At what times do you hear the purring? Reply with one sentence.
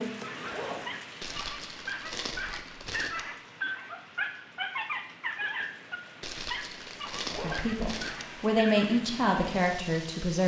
The purring can't be heard in this clip.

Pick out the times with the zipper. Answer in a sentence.
You can hear the zipper from 0.4 to 0.8 s and from 7.2 to 7.7 s.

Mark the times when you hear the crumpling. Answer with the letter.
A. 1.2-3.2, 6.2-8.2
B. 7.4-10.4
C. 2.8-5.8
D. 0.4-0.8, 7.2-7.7
A.